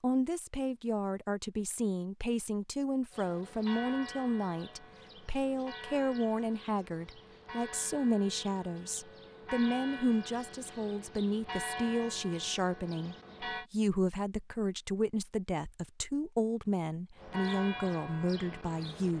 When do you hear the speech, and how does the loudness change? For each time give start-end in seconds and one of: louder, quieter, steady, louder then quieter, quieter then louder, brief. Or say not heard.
0.0-19.1 steady.